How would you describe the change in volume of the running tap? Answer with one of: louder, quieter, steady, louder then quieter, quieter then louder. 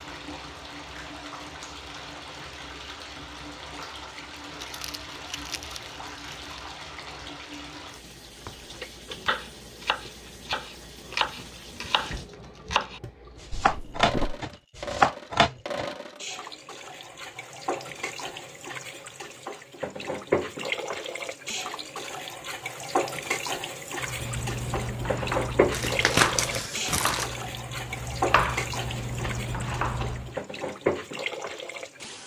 louder.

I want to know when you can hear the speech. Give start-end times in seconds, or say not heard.
not heard.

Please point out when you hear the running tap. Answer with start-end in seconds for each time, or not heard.
0.0-32.2.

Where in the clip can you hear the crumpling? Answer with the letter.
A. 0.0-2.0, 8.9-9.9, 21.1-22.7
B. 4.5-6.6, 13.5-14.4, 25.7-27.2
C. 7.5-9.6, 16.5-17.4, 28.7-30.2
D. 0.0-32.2
B.